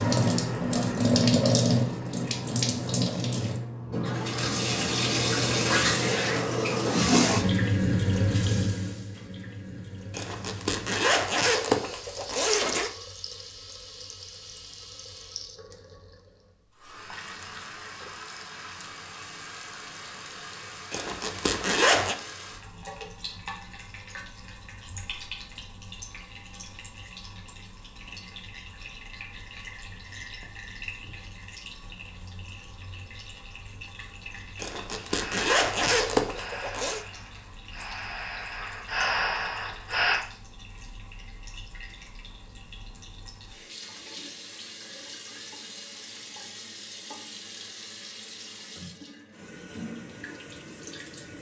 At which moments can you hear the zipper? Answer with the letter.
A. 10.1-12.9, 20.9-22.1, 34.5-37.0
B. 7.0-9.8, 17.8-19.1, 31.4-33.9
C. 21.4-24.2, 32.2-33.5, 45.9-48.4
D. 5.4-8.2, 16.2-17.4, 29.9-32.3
A.